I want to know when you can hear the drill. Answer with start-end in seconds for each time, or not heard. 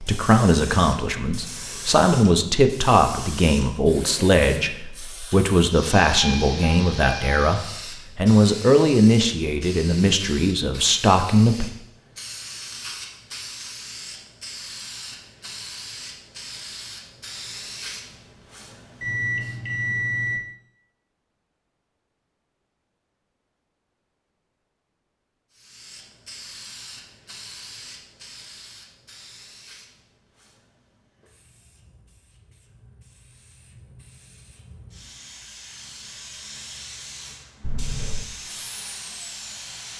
38.4-39.9.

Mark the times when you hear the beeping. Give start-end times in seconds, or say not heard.
6.2-7.5, 19.0-20.4, 37.6-38.2.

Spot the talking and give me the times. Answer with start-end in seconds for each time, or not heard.
0.0-11.7.